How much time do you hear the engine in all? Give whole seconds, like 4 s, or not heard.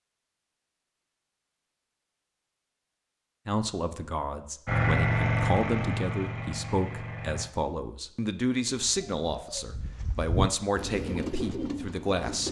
3 s.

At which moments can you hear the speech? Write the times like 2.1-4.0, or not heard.
3.5-12.4.